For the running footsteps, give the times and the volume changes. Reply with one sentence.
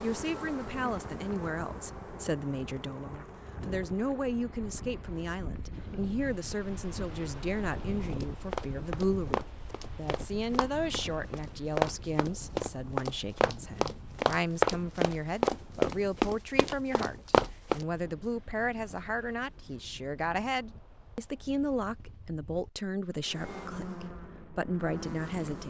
The running footsteps can be heard from 8.1 to 17.9 s, getting louder.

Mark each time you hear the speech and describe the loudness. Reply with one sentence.
You can hear the speech from 0.0 to 25.6 s, at a steady volume.